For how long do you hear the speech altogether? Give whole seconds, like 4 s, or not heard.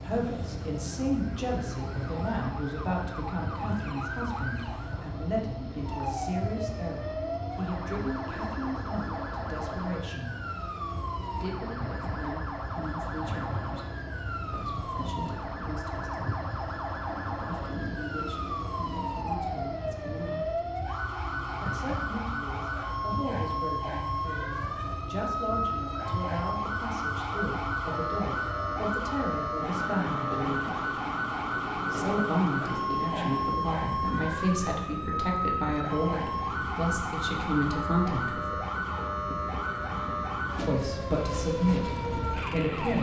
37 s.